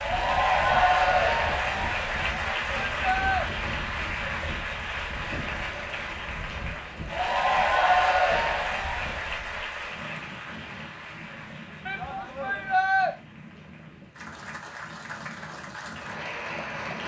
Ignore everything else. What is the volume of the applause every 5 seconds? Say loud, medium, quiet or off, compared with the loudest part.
loud, loud, quiet, medium.